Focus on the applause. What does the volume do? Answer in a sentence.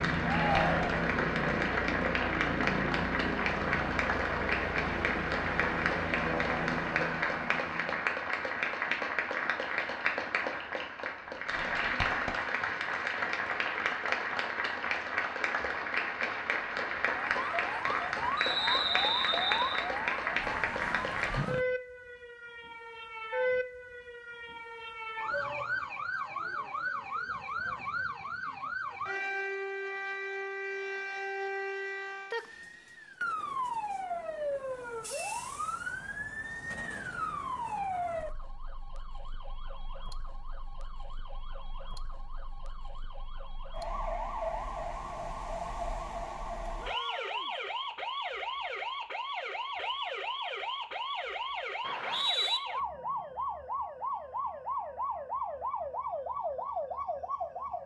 The loudness of the applause stays about the same.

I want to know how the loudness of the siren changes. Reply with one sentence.
The volume of the siren stays about the same.